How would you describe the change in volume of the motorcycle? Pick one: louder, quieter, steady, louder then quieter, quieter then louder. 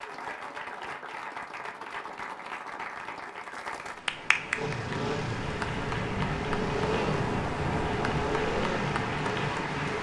steady.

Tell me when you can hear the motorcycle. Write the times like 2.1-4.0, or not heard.
4.5-9.9.